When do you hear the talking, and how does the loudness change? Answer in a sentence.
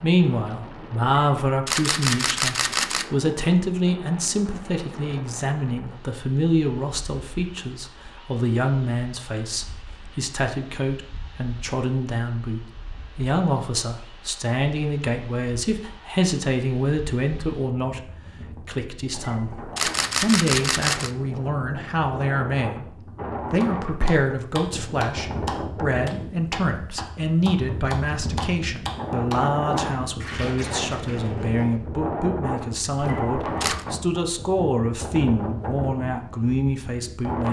The talking can be heard from 0.0 to 37.4 s, at a steady volume.